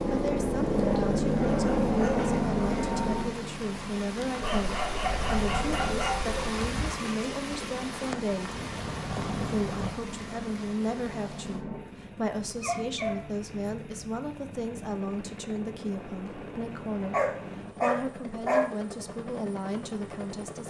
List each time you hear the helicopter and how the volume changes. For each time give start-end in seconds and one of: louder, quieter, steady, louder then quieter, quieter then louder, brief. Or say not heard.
0.0-20.6 quieter.